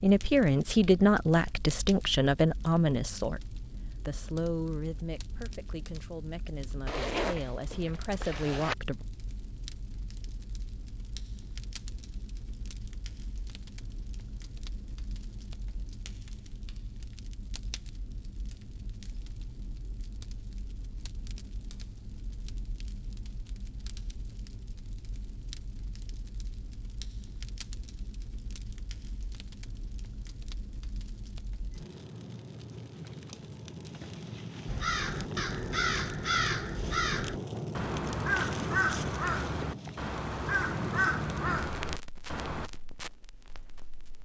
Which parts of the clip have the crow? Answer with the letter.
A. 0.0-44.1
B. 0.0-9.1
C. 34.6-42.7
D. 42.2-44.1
C.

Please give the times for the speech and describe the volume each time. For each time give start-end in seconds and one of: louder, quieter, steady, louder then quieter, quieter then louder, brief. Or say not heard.
0.0-9.1 quieter then louder.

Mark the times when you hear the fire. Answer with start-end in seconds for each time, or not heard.
0.0-44.1.